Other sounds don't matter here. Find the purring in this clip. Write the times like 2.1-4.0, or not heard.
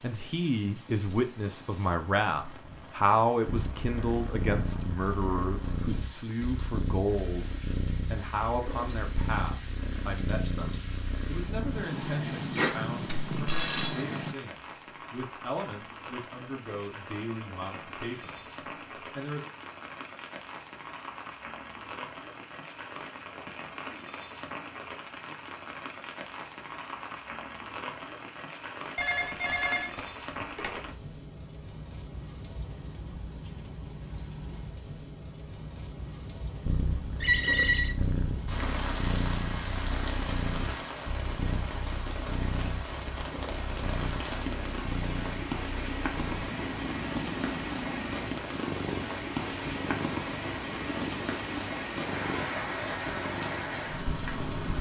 3.5-14.3, 36.6-54.7.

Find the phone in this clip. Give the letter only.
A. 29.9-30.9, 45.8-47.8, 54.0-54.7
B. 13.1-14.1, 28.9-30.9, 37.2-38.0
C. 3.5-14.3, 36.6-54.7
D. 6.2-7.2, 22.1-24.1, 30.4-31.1
B.